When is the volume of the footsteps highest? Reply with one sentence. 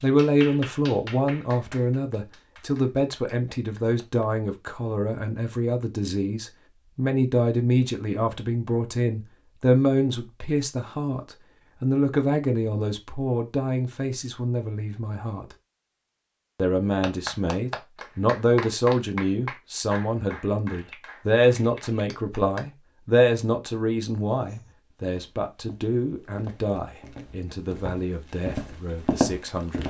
The volume of the footsteps peaks at 29 seconds.